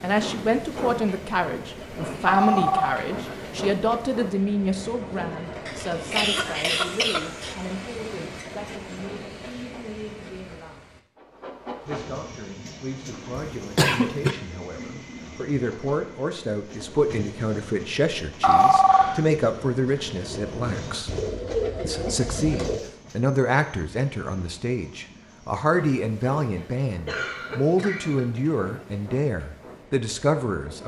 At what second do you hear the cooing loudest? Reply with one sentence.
The loudest moment of the cooing is at 22 seconds.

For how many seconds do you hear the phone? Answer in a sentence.
The phone can be heard for 2 seconds in total.